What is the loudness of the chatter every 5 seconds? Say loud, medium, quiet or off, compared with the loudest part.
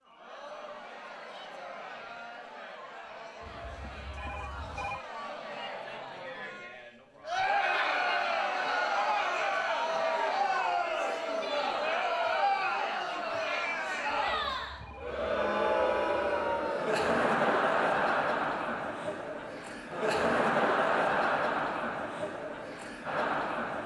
quiet, loud, loud, loud, loud.